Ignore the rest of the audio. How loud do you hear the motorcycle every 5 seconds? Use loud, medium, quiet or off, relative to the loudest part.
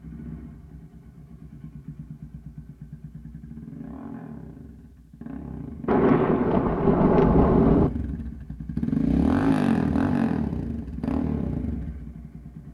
quiet, loud, loud.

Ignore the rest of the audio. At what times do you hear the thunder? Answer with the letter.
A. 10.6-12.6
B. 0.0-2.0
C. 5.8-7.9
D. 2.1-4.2
C.